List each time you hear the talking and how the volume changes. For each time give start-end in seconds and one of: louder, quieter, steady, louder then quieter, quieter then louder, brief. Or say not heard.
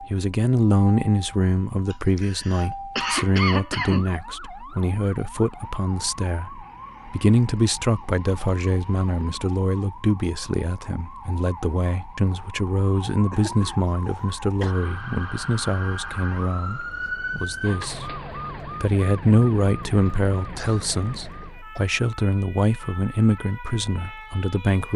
0.0-24.9 steady.